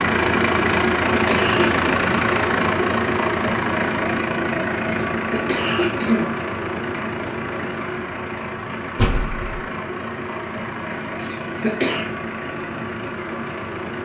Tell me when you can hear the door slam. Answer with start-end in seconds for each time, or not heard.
8.9-9.7.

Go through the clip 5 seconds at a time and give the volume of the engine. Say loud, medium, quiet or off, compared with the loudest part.
loud, medium, medium.